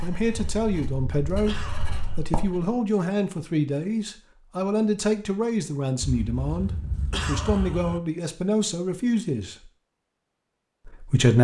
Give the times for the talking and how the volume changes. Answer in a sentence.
The talking can be heard briefly from 0.0 to 1.6 s; from 2.1 to 9.7 s, at a steady volume; and briefly from 10.8 to 11.3 s.